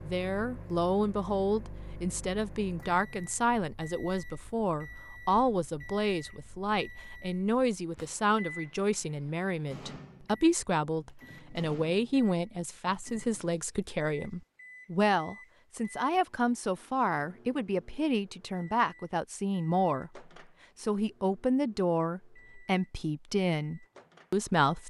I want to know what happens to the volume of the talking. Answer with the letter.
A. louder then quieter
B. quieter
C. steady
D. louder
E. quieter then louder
C.